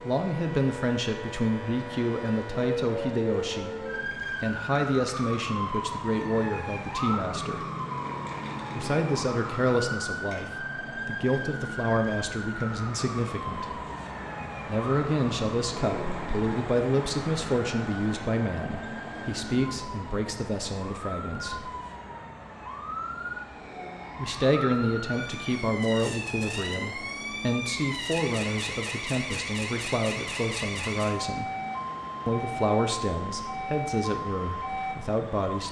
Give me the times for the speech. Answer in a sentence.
The speech can be heard from 0.0 to 7.7 s, from 8.8 to 13.8 s, from 14.7 to 21.7 s, from 24.1 to 31.5 s and from 32.2 to 35.6 s.